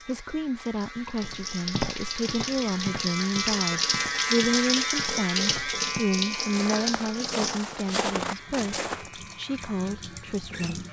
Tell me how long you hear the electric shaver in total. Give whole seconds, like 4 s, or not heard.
11 s.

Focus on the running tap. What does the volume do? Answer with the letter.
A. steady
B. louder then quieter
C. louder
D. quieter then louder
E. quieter
B.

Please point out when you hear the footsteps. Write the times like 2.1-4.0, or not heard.
1.2-9.1.